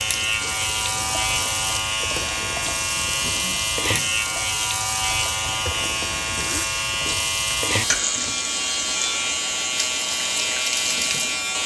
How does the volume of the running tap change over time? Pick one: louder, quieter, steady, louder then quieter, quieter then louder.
steady.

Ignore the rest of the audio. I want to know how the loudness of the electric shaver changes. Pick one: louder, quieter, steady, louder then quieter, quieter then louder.
steady.